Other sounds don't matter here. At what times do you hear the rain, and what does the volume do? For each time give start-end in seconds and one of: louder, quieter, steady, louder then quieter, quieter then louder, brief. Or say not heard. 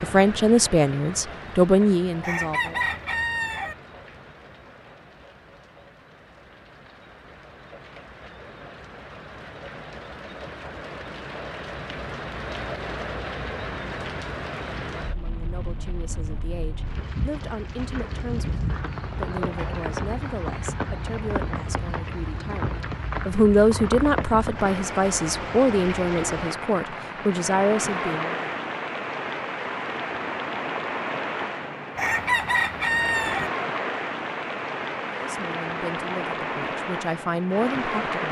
0.0-38.2 louder.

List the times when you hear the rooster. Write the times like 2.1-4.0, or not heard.
2.2-3.8, 31.9-33.5.